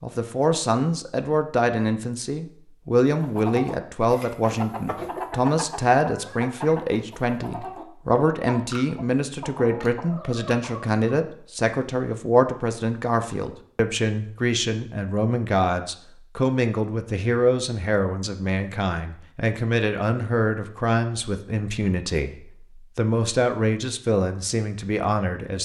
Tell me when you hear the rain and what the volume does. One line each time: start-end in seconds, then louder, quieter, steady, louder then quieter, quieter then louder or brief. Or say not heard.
not heard.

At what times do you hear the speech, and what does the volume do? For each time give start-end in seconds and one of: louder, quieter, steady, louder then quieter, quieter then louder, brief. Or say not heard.
0.0-25.5 steady.